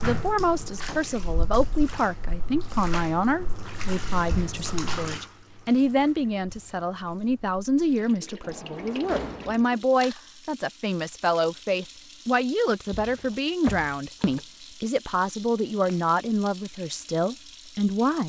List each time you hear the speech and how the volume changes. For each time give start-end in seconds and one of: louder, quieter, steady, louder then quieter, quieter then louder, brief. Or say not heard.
0.0-18.2 steady.